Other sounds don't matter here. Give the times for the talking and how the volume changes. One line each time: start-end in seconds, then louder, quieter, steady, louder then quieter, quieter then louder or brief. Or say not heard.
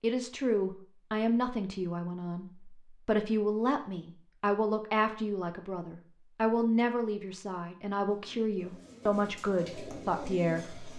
0.0-10.8 steady.